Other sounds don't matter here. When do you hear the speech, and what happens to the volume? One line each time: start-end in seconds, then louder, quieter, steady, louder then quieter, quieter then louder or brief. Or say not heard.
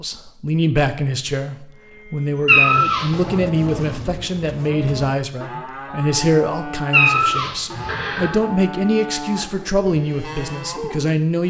0.0-11.4 steady.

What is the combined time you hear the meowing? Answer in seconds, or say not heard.
2 s.